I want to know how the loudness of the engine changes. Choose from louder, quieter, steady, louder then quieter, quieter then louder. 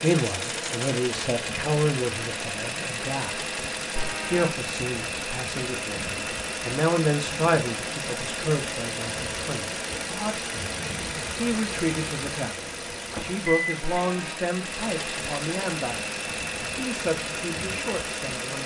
steady.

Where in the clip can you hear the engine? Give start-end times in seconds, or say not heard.
0.0-18.6.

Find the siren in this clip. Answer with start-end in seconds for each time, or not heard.
not heard.